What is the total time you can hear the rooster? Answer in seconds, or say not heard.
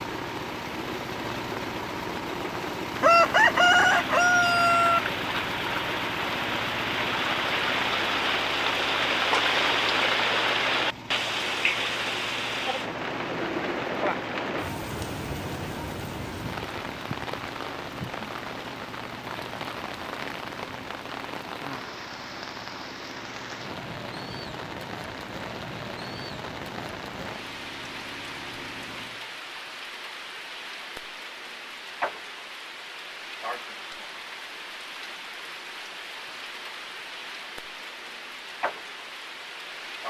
2 s.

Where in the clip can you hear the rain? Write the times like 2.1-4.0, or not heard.
0.0-40.0.